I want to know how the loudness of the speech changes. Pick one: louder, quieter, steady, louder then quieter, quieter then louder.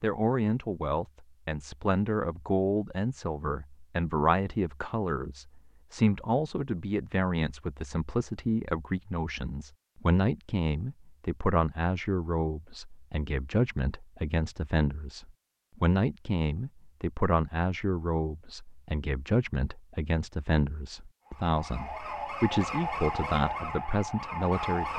steady.